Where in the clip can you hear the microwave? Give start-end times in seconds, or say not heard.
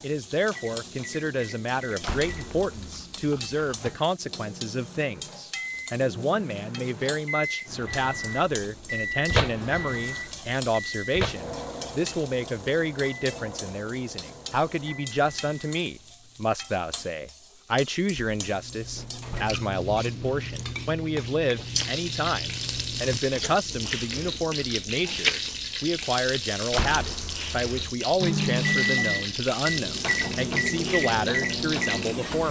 0.1-16.1, 28.2-32.4.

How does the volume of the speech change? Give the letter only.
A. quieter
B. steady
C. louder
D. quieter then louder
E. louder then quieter
B.